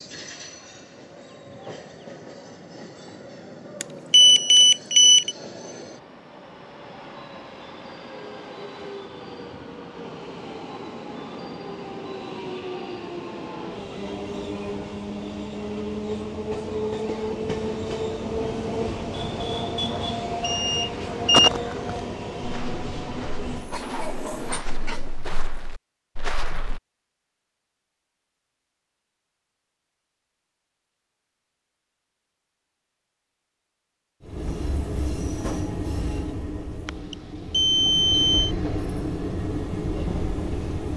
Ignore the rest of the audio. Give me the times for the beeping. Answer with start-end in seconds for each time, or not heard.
3.8-5.3, 20.4-21.5, 36.9-38.5.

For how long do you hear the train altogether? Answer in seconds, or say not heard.
32 s.